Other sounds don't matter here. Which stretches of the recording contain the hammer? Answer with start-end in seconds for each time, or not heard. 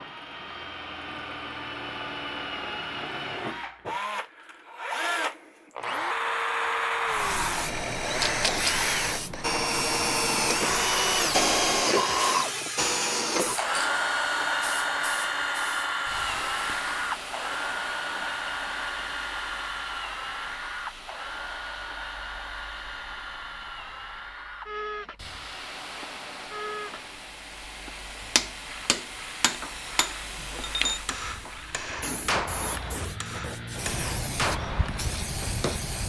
28.4-35.9.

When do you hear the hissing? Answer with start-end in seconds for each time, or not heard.
7.0-36.0.